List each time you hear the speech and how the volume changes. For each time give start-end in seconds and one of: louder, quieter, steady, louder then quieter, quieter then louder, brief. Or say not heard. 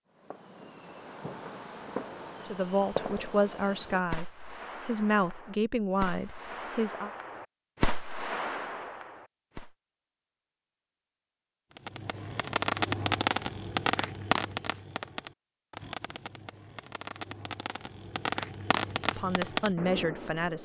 2.5-7.1 steady
19.1-20.6 brief.